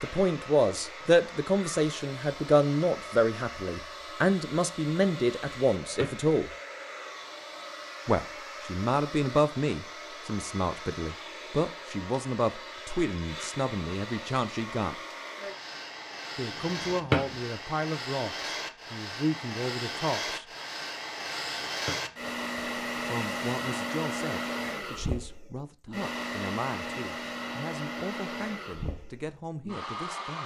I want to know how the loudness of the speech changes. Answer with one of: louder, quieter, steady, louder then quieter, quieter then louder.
quieter.